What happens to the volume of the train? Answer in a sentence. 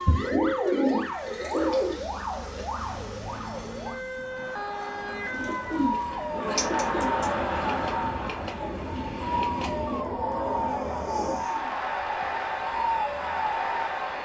The volume of the train goes up.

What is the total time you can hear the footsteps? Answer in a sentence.
The footsteps can't be heard in this clip.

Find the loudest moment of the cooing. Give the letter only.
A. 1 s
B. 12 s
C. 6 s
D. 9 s
A.